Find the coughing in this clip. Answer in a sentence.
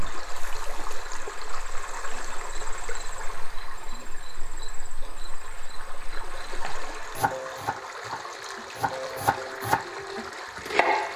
You can't hear the coughing here.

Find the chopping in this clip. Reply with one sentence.
The chopping can be heard from 6.6 to 11.1 s.